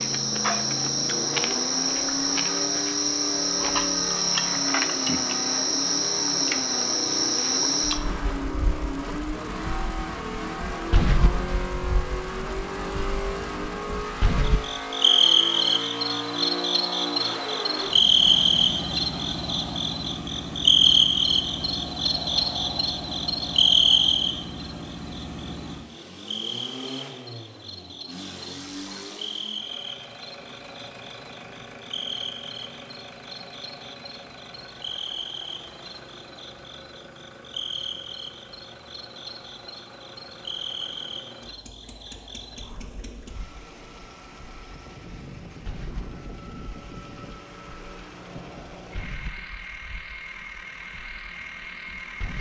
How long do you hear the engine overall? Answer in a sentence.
You can hear the engine for 52 seconds altogether.